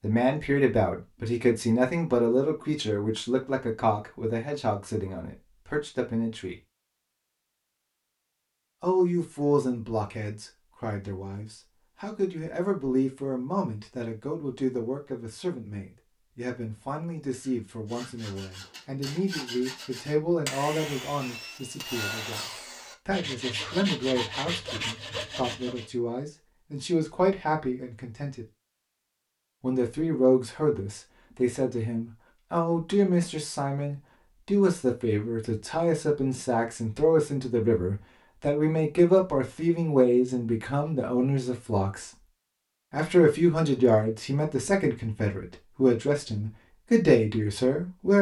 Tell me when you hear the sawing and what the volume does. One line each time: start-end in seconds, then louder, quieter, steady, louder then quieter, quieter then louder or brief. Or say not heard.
17.4-25.9 louder.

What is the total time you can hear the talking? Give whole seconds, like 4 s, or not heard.
44 s.